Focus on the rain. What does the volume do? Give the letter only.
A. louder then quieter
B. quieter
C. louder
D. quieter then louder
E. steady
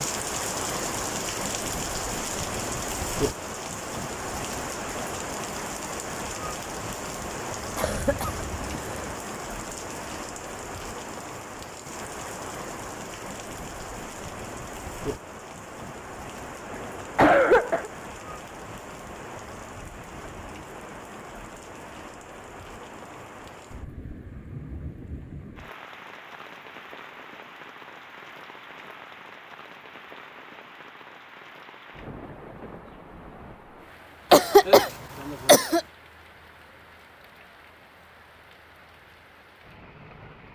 B.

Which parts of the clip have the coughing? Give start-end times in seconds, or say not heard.
7.8-9.1, 16.7-17.9, 34.3-35.8.